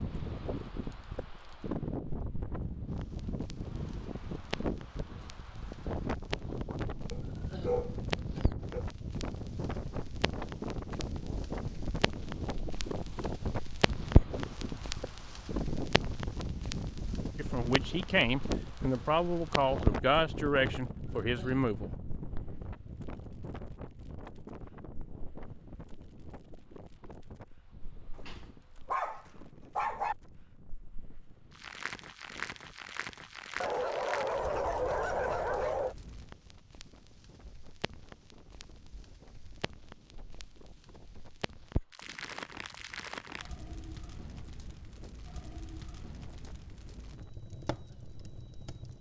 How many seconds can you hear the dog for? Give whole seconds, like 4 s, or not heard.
6 s.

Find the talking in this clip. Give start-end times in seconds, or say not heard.
17.4-21.9.